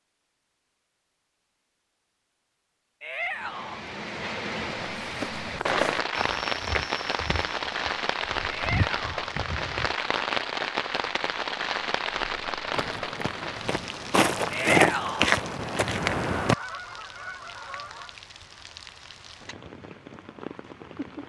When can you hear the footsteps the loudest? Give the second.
15 s.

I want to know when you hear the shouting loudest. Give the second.
15 s.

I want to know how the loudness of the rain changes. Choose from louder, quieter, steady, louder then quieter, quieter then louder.
quieter.